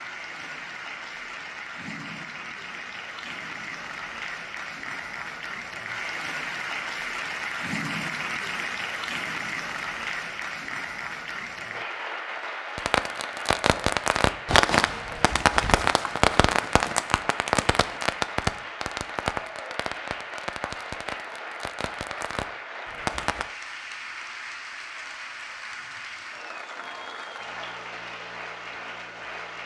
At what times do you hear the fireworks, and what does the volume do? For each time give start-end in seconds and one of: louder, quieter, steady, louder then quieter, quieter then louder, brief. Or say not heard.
12.8-23.5 quieter.